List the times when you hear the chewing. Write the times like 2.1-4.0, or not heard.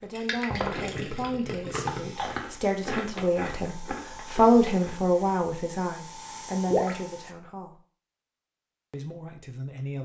0.0-5.2.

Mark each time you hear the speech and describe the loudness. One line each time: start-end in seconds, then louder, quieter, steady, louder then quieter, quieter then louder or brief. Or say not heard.
0.0-7.8 louder then quieter
8.9-10.0 brief.